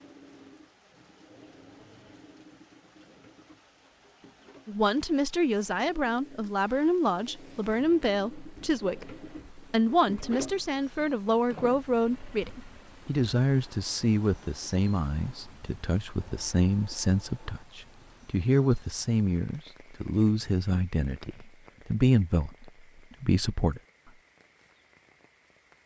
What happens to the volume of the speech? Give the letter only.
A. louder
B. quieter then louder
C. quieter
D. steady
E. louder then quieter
D.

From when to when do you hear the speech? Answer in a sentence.
The speech can be heard from 4.7 to 23.8 s.